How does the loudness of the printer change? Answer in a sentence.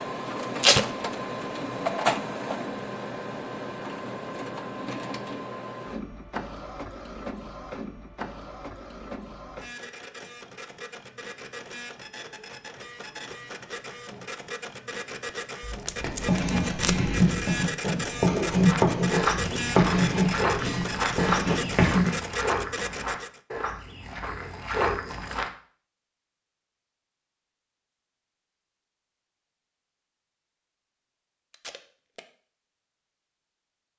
The loudness of the printer goes down, then up.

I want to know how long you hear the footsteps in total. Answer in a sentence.
You can hear the footsteps for 7 seconds altogether.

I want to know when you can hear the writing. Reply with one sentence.
You can hear the writing from 16.0 to 22.1 s.